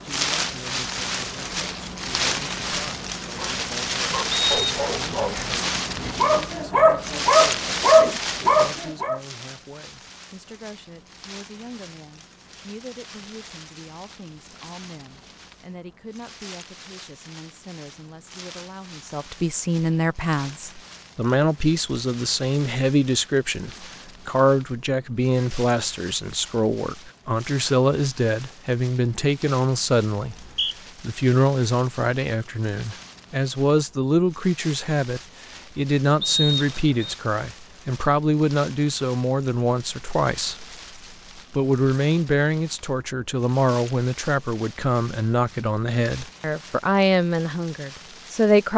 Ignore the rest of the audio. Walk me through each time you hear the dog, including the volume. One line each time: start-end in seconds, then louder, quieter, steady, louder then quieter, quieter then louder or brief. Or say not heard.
3.4-9.2 louder.